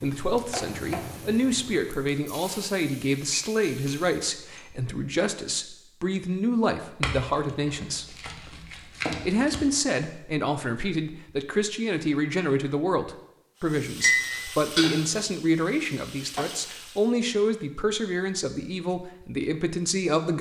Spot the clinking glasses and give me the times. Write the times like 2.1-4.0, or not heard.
3.3-4.7, 7.0-9.6, 14.0-15.0.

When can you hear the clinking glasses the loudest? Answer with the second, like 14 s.
14 s.